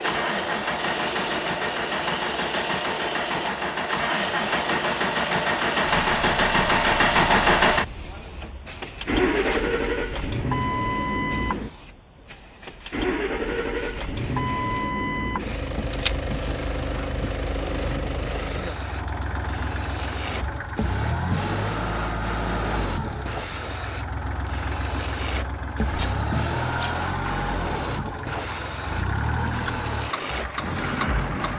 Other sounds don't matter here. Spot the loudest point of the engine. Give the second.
7 s.